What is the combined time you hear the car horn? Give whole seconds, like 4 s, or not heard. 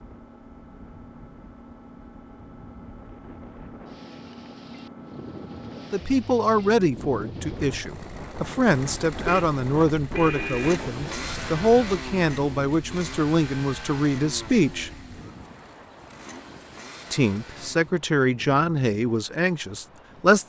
2 s.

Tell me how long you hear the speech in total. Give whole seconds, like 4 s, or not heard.
12 s.